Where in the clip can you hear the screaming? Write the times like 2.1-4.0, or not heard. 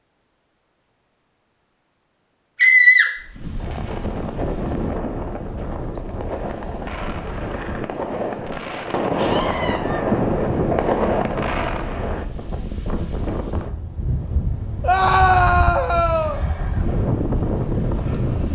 2.6-3.1, 9.2-9.8, 14.8-16.4.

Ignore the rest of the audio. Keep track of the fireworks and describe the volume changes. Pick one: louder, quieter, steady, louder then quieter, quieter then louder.
louder.